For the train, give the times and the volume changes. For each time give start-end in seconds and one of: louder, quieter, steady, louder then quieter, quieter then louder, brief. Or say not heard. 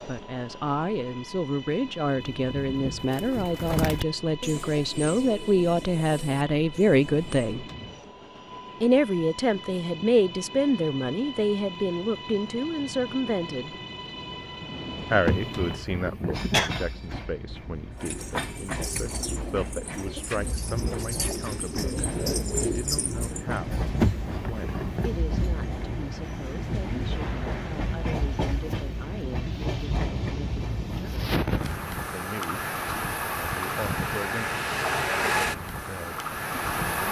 0.0-37.0 louder.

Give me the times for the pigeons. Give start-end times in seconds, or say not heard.
2.0-7.5, 17.9-23.6.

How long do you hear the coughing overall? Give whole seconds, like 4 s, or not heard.
3 s.